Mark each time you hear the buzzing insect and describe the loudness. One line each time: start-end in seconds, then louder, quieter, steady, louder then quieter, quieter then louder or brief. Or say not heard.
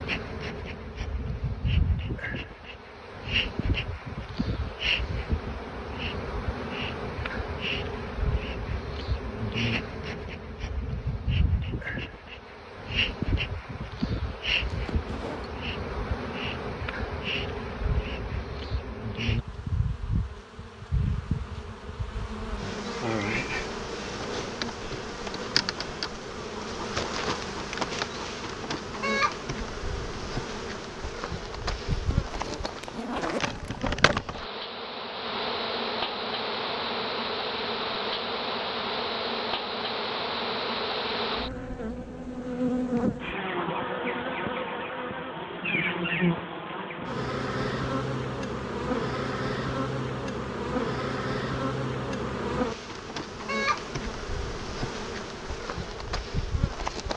0.0-57.1 steady.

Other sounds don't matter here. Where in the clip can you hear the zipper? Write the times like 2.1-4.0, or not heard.
14.7-15.5, 32.1-33.8.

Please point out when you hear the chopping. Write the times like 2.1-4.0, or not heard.
not heard.